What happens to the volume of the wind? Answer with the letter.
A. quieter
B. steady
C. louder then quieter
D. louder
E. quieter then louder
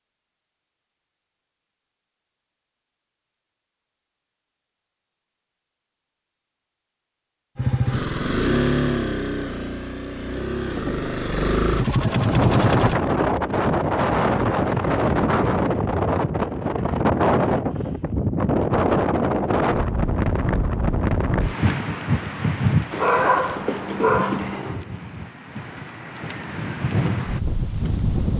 A.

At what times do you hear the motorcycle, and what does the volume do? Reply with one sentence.
The motorcycle can be heard from 7.5 to 13.0 s, getting quieter then louder.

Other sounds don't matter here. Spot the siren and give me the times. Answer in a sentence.
The siren can't be heard in this clip.